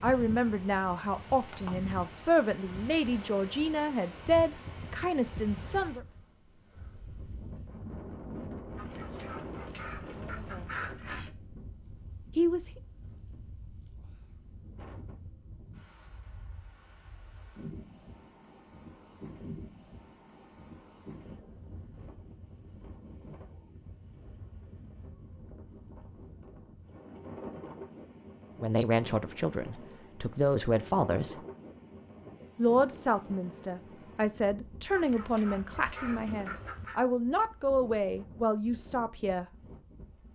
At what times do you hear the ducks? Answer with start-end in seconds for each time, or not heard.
8.8-11.3, 35.0-37.0.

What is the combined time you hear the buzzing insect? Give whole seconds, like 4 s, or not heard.
not heard.